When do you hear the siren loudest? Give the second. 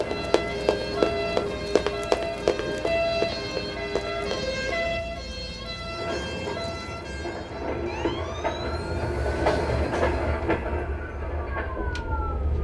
3 s.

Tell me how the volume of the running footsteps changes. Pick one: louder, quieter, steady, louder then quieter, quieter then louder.
quieter.